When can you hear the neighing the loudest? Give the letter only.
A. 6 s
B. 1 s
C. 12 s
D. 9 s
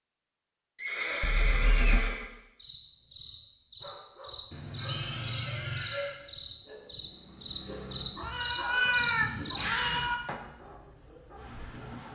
B.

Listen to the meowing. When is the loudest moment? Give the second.
9 s.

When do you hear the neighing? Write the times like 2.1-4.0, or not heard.
0.8-2.2, 4.8-6.2, 8.2-9.6.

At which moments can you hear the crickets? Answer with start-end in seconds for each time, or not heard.
2.5-12.1.